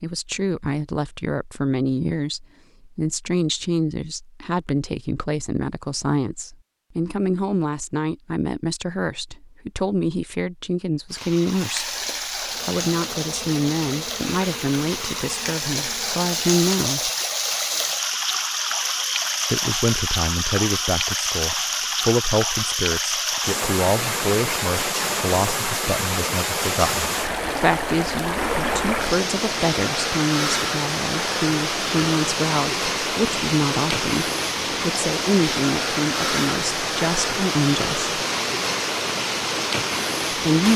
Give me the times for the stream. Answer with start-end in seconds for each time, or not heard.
11.1-40.7.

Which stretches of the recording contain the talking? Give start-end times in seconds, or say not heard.
0.0-11.9, 12.6-17.1, 19.5-38.1, 40.3-40.7.